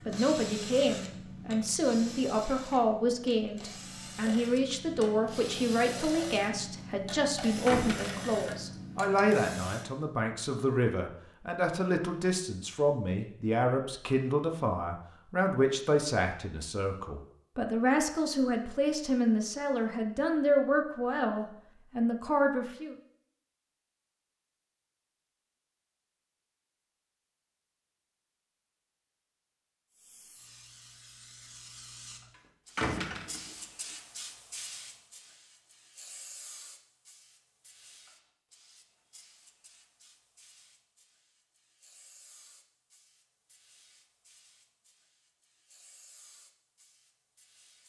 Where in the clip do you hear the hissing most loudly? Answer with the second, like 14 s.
34 s.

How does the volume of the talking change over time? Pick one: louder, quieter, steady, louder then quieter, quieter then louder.
steady.